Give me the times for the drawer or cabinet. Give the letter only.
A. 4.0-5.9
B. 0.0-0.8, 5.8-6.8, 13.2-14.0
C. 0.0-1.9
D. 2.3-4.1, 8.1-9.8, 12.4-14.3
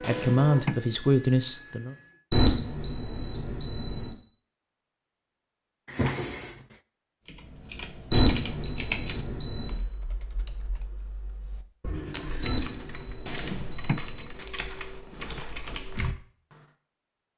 B.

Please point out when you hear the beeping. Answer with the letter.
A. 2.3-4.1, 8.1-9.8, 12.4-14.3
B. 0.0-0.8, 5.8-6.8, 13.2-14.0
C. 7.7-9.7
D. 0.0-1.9
A.